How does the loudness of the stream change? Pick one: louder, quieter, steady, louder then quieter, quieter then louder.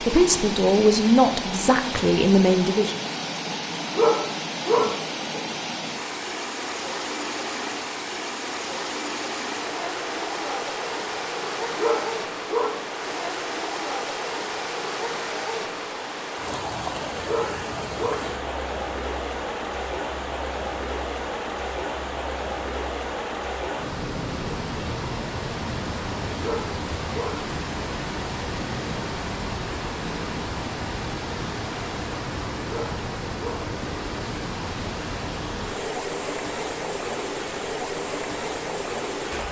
steady.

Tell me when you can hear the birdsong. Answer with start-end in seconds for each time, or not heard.
not heard.